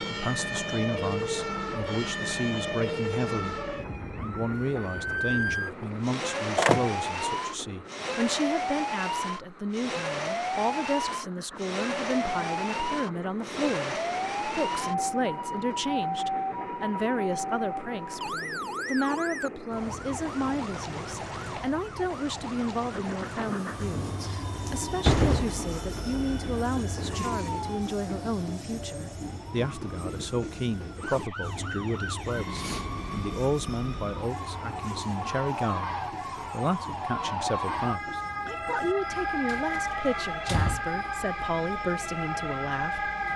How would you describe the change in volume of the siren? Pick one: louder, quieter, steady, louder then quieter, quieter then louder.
quieter then louder.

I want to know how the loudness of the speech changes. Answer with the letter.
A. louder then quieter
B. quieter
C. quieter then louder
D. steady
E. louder
D.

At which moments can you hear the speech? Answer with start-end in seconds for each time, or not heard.
0.0-3.5, 4.2-43.3.